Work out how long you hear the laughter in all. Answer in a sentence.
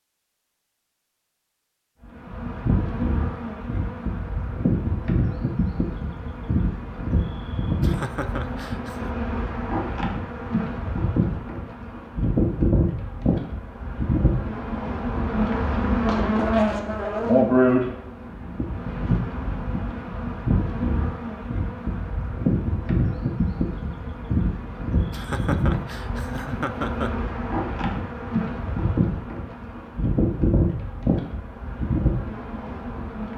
The laughter can be heard for 3 seconds in total.